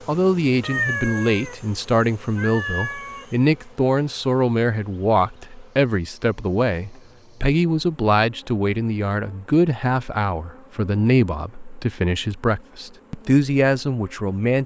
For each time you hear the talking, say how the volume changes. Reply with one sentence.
The talking can be heard from 0.1 to 14.6 s, at a steady volume.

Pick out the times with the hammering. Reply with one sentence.
You can't hear the hammering here.